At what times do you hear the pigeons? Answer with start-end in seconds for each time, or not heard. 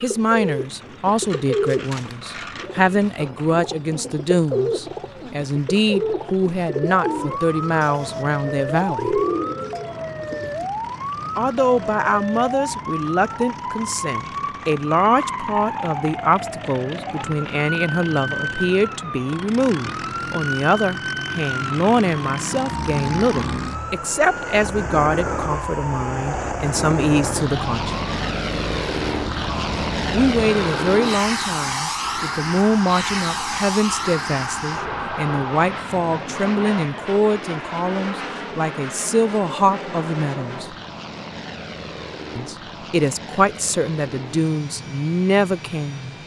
0.0-10.7.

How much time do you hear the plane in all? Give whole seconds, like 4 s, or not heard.
46 s.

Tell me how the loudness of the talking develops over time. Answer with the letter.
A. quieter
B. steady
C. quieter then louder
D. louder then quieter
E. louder
B.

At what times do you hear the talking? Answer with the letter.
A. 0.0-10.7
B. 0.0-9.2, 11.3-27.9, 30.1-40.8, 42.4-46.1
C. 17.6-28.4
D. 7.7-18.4
B.